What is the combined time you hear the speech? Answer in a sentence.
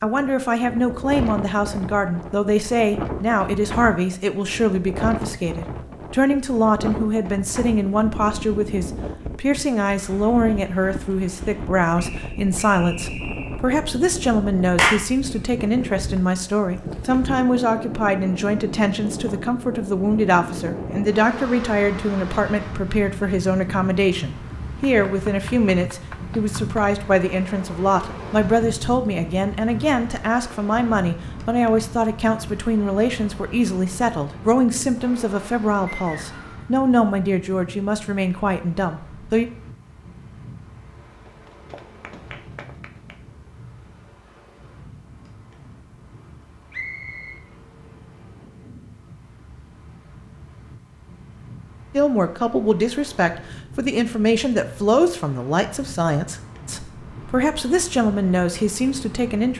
The speech can be heard for 47 seconds in total.